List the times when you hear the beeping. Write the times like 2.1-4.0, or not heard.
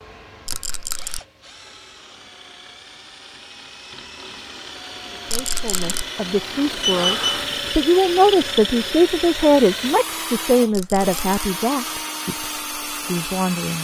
6.8-7.7.